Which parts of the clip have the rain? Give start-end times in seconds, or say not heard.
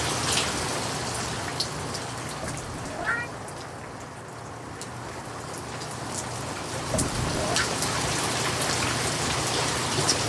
0.0-10.2.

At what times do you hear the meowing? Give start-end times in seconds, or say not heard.
2.4-3.3, 6.9-7.7.